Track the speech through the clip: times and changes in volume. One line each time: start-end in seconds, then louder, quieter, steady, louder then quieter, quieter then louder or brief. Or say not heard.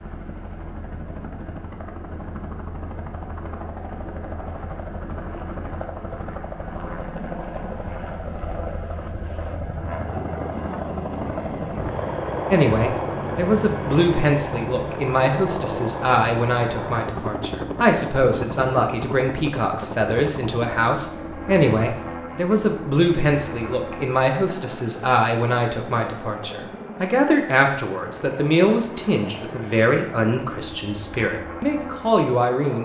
12.5-32.8 steady.